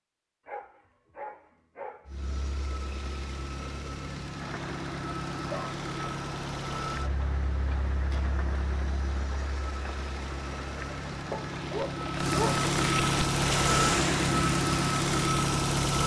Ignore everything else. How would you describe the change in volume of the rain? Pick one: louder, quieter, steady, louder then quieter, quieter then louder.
louder.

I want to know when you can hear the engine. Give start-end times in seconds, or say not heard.
2.0-16.0.